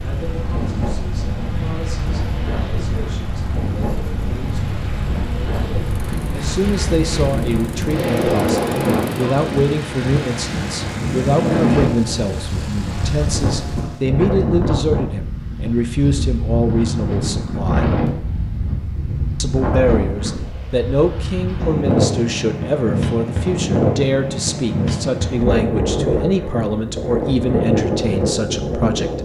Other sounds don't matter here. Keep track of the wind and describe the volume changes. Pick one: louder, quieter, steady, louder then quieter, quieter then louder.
louder.